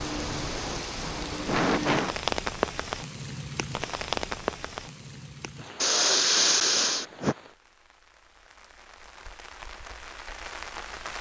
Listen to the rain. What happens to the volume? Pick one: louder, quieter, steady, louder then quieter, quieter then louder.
quieter then louder.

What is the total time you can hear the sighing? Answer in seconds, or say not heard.
4 s.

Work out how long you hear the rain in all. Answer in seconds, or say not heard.
11 s.